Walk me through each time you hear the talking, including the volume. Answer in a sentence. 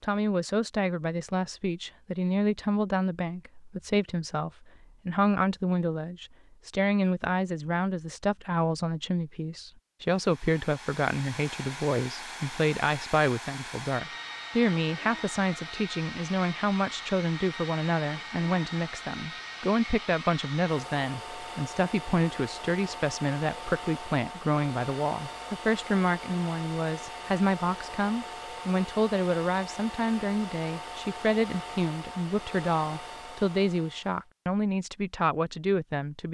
You can hear the talking from 0.0 to 36.2 s, at a steady volume.